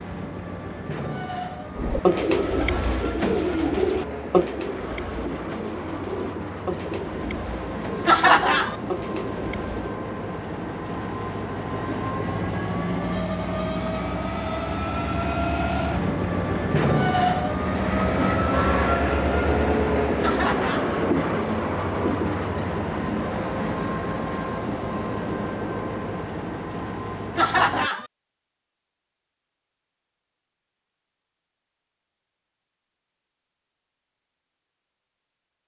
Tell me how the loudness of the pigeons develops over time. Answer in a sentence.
The loudness of the pigeons goes down.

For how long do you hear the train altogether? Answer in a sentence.
You can hear the train for 28 seconds altogether.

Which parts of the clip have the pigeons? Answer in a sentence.
The pigeons can be heard from 1.8 to 9.9 s.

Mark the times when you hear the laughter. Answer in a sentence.
You can hear the laughter from 8.1 to 8.8 s, from 20.2 to 20.9 s and from 27.4 to 28.1 s.